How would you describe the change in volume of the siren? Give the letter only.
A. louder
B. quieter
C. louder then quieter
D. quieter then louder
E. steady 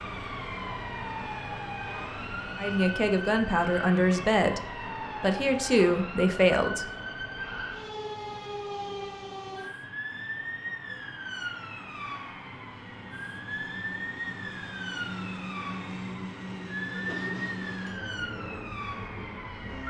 E.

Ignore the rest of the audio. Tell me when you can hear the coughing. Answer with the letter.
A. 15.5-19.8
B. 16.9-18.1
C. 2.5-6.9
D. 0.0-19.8
B.